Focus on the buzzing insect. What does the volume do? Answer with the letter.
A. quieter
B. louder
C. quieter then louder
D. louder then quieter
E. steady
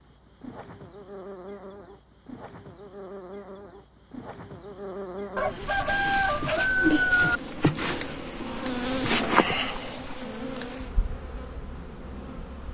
D.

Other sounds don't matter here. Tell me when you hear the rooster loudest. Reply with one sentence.
The loudest moment of the rooster is at 7 seconds.